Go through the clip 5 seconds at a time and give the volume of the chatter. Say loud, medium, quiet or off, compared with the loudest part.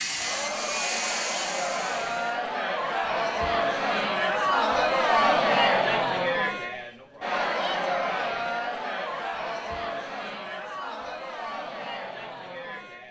loud, loud, medium.